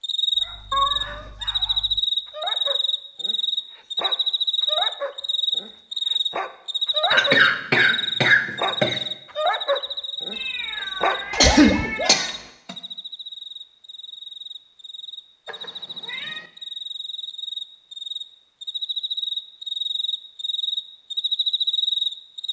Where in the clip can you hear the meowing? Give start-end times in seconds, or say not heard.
0.7-1.4, 10.3-12.5, 15.4-16.5.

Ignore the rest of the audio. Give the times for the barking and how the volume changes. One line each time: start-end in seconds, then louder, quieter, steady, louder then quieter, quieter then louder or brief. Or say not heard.
0.3-12.2 louder.